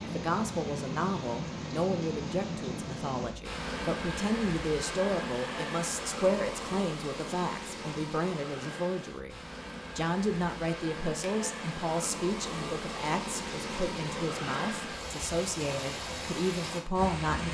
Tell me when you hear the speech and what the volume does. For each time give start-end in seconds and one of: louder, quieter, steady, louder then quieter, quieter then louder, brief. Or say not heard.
0.0-17.4 steady.